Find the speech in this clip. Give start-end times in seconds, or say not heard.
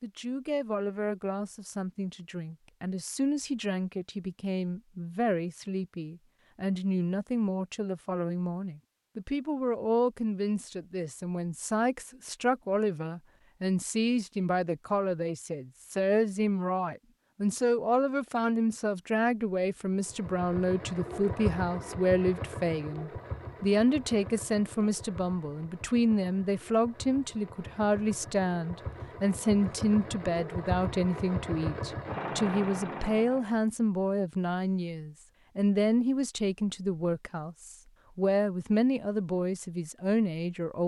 0.0-40.8.